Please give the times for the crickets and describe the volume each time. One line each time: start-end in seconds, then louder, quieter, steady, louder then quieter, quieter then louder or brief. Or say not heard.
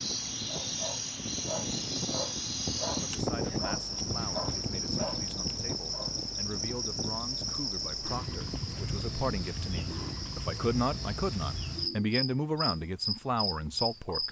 0.0-14.2 steady.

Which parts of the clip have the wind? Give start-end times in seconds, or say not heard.
0.0-10.3.